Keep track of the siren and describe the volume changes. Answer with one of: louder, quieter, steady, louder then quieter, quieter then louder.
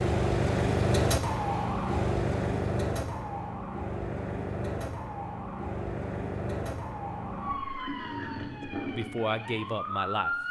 quieter.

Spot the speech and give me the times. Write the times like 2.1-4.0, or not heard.
8.8-10.4.